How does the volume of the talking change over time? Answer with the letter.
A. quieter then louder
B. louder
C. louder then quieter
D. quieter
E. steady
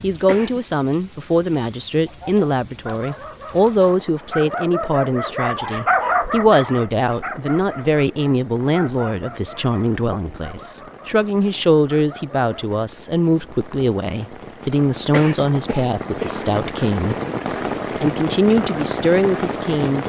E.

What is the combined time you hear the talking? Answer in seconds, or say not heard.
20 s.